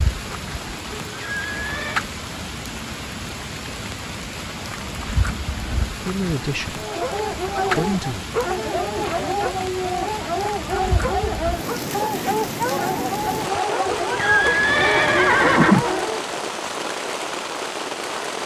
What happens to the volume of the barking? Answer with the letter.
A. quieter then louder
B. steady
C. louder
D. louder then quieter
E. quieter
B.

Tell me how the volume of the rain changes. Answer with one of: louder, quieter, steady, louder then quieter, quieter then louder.
steady.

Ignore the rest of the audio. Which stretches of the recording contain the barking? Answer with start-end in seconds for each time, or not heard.
6.7-16.2.